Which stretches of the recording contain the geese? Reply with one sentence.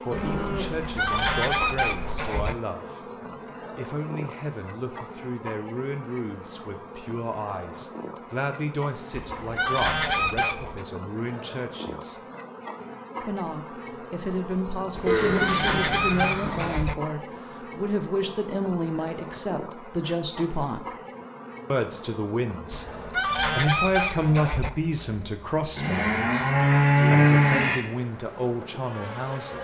You can hear the geese from 0.8 to 2.5 s, from 9.1 to 10.8 s, from 14.9 to 16.9 s and from 22.7 to 24.7 s.